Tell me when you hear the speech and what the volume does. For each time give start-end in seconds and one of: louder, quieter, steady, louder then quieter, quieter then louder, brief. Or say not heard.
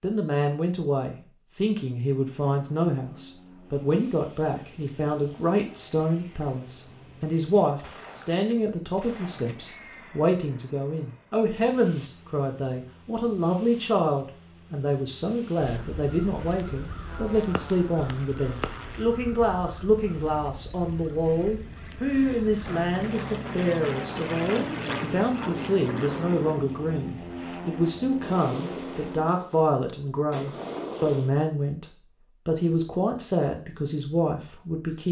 0.0-31.9 steady
32.5-35.0 brief.